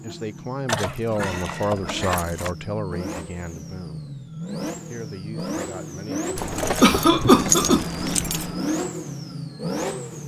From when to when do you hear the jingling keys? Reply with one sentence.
The jingling keys can be heard from 0.7 to 2.5 s and from 6.3 to 8.7 s.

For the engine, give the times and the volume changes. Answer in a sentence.
The engine can be heard from 0.0 to 10.2 s, getting louder.